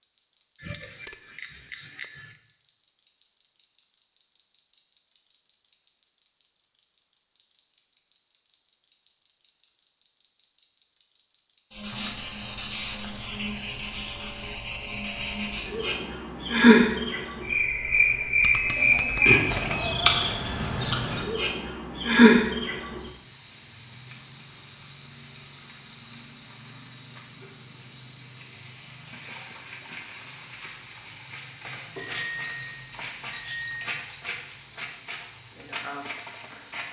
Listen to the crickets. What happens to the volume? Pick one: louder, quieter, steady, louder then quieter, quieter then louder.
louder then quieter.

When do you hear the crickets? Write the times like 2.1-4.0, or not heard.
0.0-36.8.